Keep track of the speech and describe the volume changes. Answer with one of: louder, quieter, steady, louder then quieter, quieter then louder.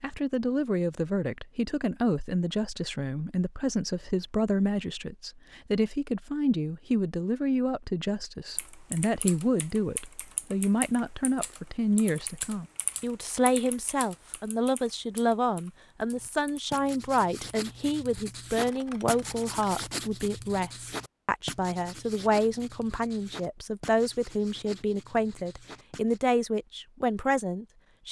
steady.